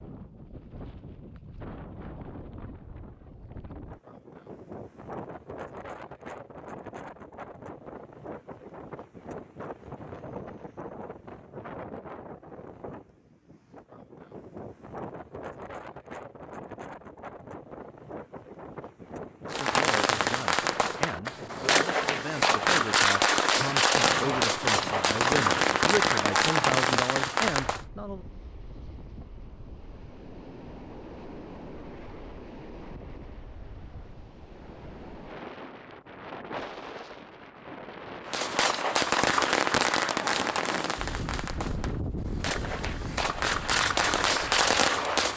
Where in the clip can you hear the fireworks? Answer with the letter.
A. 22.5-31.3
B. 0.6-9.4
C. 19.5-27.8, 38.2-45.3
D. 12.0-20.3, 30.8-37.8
C.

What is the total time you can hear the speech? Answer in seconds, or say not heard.
9 s.